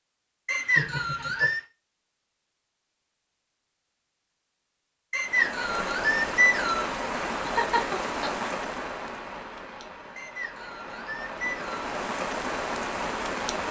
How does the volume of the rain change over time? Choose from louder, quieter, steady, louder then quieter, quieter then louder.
quieter then louder.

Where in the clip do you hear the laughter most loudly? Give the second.
8 s.